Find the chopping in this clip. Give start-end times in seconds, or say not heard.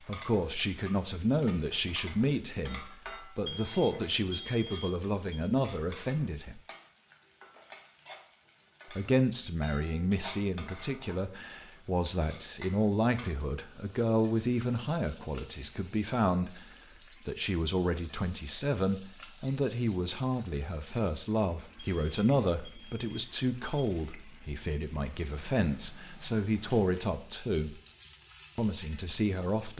not heard.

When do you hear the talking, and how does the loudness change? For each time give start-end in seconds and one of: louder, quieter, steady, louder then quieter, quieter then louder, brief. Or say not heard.
0.1-6.6 steady
8.9-27.8 steady
28.6-29.7 brief.